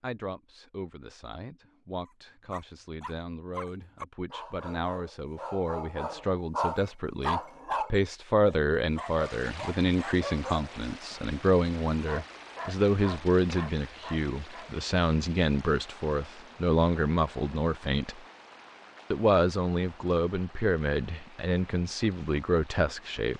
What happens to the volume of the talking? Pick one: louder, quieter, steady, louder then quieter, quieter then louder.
louder.